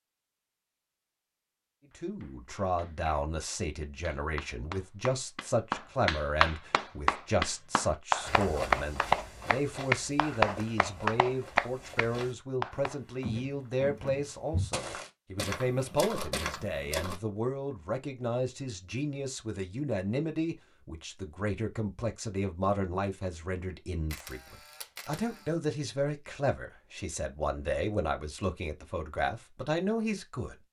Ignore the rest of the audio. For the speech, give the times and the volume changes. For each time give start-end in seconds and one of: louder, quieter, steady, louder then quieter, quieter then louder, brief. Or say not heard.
1.9-30.6 steady.